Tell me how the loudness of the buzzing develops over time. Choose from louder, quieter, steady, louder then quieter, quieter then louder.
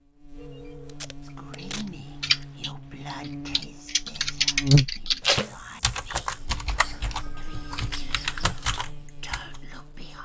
louder then quieter.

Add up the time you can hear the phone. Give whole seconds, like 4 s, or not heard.
2 s.